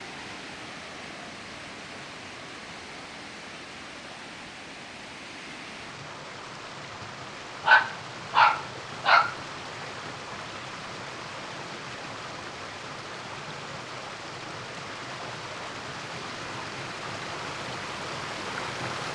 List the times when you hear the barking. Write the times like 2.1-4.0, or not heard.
7.7-9.3.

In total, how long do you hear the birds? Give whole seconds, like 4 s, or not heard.
not heard.